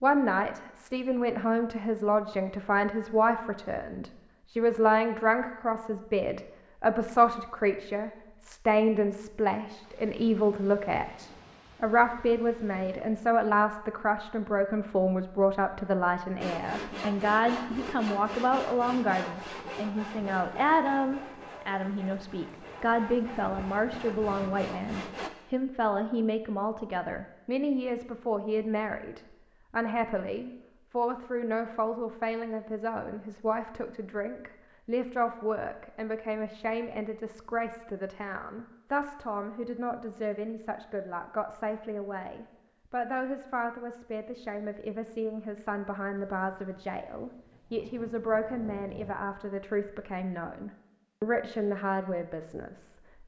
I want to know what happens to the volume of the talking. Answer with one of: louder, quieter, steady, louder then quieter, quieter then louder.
quieter.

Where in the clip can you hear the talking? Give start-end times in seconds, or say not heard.
0.0-53.2.